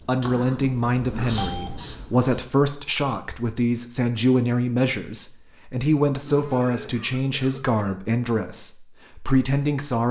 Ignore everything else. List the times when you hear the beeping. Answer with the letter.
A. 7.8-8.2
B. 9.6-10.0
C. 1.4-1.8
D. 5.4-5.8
C.